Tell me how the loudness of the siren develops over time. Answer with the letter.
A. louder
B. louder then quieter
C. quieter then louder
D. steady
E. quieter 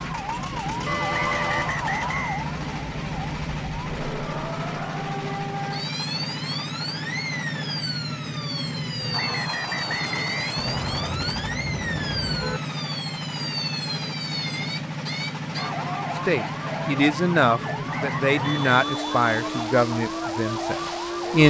D.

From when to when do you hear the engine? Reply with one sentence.
The engine can be heard from 0.0 to 21.4 s.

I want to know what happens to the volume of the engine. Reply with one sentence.
The volume of the engine stays about the same.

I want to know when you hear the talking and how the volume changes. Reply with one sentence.
The talking can be heard from 16.2 to 21.4 s, getting quieter.